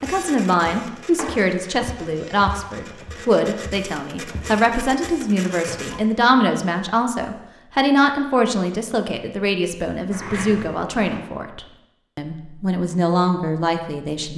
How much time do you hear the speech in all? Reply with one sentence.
You can hear the speech for 14 seconds altogether.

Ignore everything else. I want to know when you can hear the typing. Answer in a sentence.
The typing can't be heard in this clip.